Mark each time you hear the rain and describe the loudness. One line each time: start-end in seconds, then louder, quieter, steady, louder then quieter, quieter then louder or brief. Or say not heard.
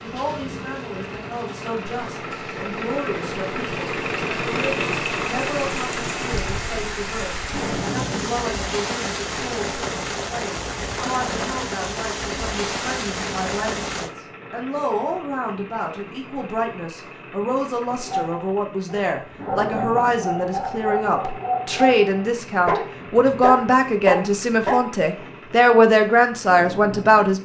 0.0-14.1 louder.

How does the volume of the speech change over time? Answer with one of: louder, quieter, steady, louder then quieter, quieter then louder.
louder.